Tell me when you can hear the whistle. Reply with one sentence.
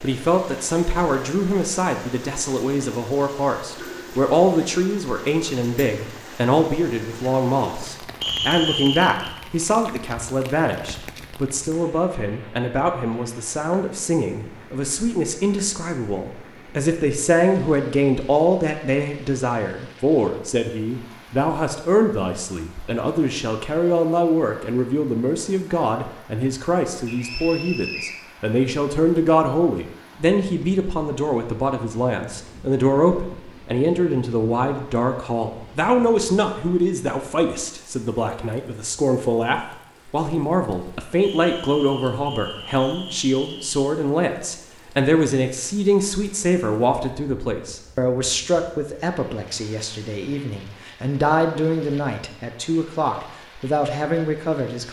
The whistle can be heard from 8.2 to 9.3 s, from 27.1 to 28.1 s and from 41.2 to 43.9 s.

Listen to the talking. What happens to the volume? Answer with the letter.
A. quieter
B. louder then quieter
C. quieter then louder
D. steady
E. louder
D.